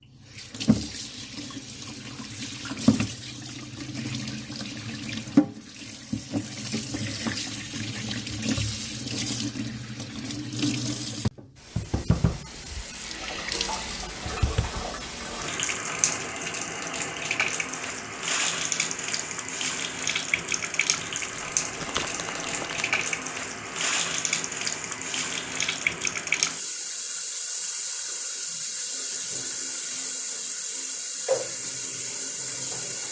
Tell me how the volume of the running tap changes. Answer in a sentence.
The loudness of the running tap stays about the same.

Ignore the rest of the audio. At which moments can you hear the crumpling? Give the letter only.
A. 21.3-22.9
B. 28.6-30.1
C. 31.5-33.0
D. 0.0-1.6
A.